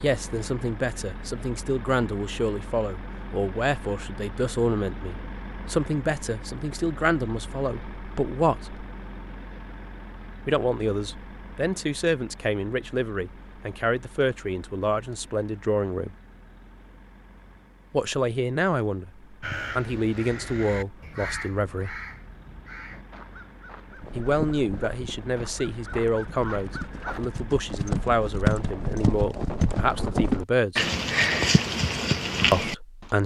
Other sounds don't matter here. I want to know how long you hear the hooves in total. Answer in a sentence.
You can hear the hooves for 9 seconds altogether.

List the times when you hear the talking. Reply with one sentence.
You can hear the talking from 0.0 to 8.8 s, from 10.4 to 16.1 s, from 17.9 to 21.9 s, from 24.1 to 30.9 s and from 32.5 to 33.2 s.